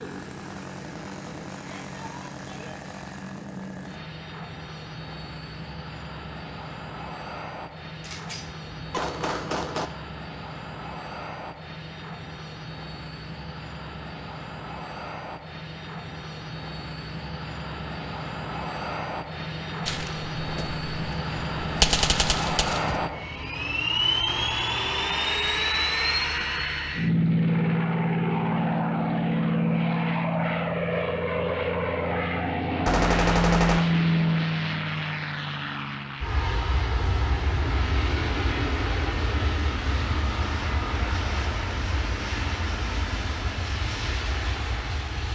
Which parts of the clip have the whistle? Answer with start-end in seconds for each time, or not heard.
not heard.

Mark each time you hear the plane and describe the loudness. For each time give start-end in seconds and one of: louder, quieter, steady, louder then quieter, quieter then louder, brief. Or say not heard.
0.0-45.3 louder then quieter.